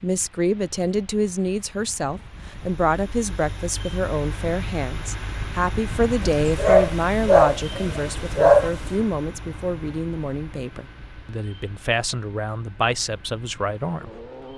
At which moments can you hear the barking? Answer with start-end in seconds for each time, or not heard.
6.2-8.8.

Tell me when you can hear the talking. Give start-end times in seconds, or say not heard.
0.0-14.2.